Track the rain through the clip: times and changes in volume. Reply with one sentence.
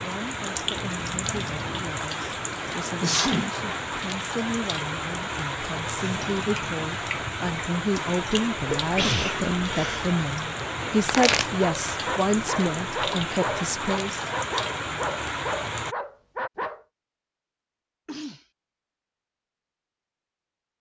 You can hear the rain from 0.0 to 15.9 s, at a steady volume.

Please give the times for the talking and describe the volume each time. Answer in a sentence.
You can hear the talking from 0.0 to 14.2 s, getting louder.